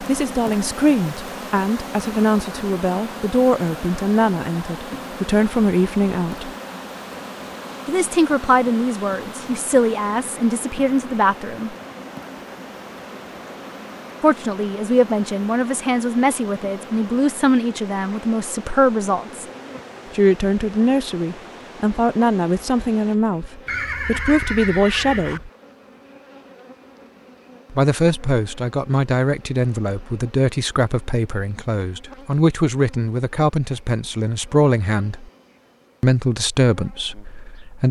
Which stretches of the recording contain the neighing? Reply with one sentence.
You can hear the neighing from 23.6 to 25.4 s.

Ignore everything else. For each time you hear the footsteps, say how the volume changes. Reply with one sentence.
The footsteps can't be heard in this clip.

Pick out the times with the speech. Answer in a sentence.
You can hear the speech from 0.0 to 6.5 s, from 7.8 to 11.8 s, from 14.2 to 19.4 s, from 20.1 to 25.5 s, from 27.7 to 35.2 s and from 36.0 to 37.8 s.